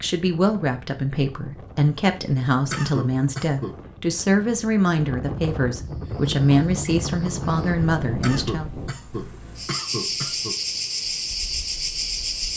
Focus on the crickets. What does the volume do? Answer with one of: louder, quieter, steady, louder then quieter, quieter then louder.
quieter then louder.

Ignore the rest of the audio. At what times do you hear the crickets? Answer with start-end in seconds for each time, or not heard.
5.8-12.5.